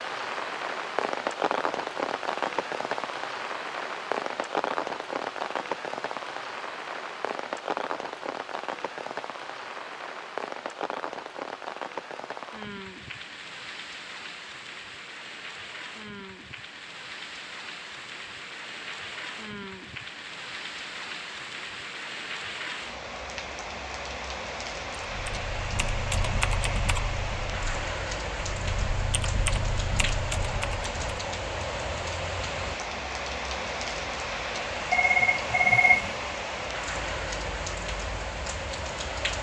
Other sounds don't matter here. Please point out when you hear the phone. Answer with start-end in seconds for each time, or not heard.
34.9-36.1.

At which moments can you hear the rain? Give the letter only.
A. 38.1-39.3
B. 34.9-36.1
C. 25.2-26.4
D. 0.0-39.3
D.